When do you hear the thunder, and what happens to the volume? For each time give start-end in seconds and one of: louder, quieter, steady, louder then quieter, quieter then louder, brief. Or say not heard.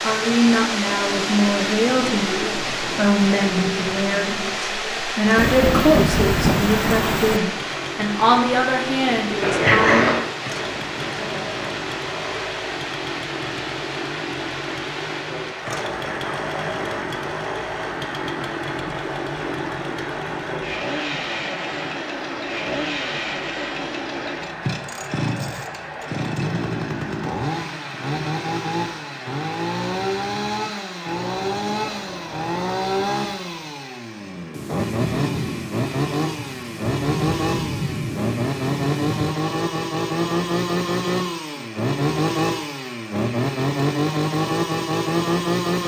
5.3-7.4 brief
34.5-39.4 quieter then louder.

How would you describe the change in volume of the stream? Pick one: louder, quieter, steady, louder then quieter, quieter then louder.
quieter.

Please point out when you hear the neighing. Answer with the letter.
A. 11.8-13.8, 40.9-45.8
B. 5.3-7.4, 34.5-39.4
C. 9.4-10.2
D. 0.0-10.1
C.